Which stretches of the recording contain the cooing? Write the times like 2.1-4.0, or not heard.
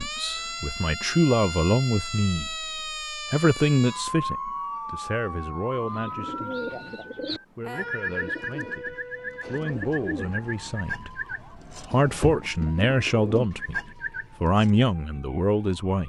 5.8-14.7.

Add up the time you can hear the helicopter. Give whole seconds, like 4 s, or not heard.
not heard.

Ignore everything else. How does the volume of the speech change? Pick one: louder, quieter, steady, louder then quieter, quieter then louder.
quieter then louder.